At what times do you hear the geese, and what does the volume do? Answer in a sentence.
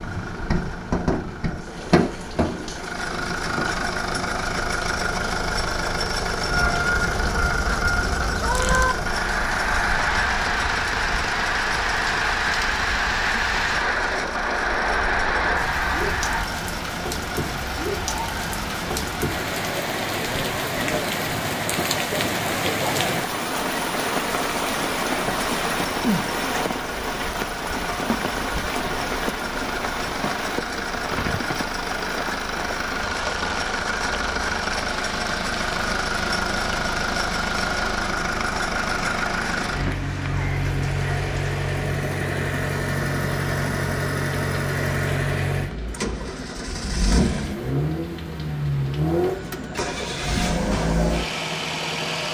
The geese can be heard from 6.5 to 16.5 s, at a steady volume.